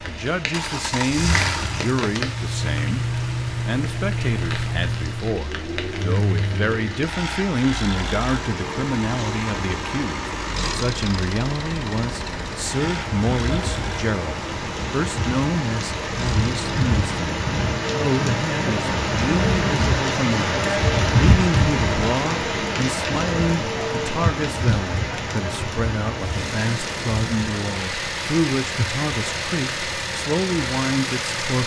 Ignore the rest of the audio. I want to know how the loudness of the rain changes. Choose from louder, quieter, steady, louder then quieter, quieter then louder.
louder then quieter.